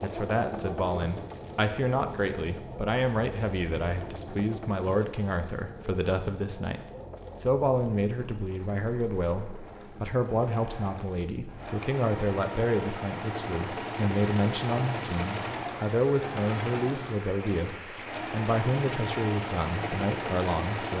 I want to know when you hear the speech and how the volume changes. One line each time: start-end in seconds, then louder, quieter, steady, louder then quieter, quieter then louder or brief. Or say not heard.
0.0-20.9 steady.